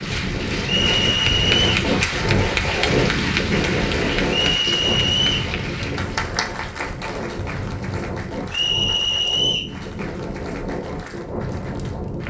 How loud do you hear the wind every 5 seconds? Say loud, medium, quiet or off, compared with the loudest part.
loud, medium, medium.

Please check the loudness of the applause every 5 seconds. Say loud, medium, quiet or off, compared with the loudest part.
loud, medium, quiet.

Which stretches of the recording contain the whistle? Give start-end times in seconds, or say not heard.
0.7-1.6, 4.2-5.5, 8.5-9.8.